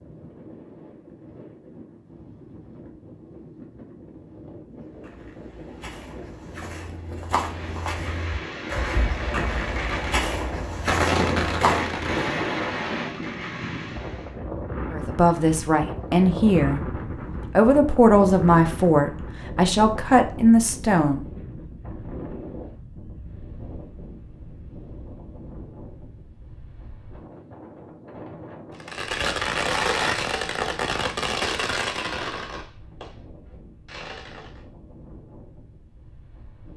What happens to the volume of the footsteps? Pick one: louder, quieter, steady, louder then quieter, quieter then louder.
louder.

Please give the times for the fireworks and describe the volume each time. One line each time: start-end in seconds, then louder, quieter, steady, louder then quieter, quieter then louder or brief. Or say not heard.
7.3-14.3 louder then quieter
28.8-34.6 quieter.